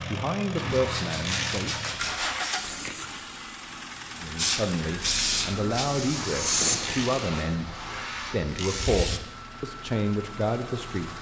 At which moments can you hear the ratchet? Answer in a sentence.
The ratchet can be heard from 0.6 to 2.5 s and from 6.1 to 9.1 s.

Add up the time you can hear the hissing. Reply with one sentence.
You can hear the hissing for 5 seconds altogether.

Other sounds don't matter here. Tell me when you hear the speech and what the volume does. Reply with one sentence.
The speech can be heard briefly from 0.0 to 1.9 s; and from 4.2 to 11.1 s, at a steady volume.